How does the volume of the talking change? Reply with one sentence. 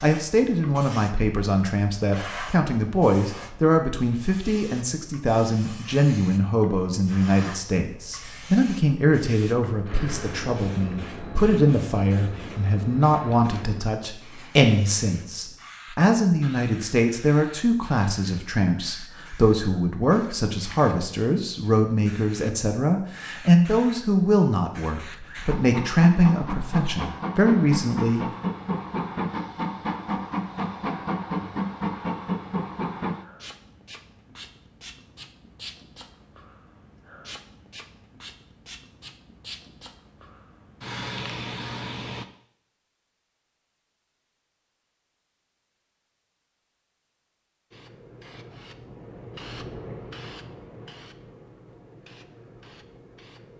The loudness of the talking stays about the same.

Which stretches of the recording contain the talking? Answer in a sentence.
You can hear the talking from 0.0 to 28.2 s.